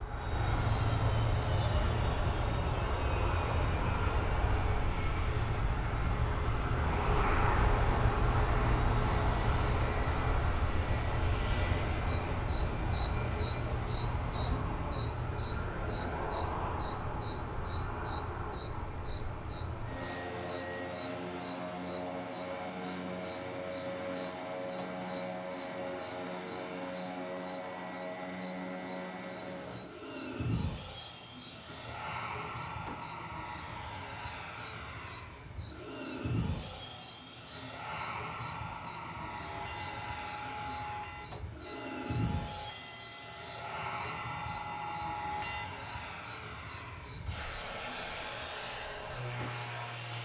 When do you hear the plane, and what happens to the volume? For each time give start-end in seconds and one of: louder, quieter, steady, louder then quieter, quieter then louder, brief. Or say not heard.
0.0-50.1 quieter.